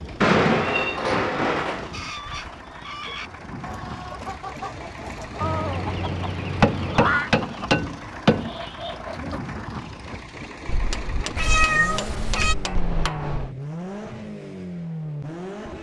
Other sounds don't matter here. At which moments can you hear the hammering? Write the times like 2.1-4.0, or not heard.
0.2-1.9, 6.6-8.6, 10.7-13.5.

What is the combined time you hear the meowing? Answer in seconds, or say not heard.
5 s.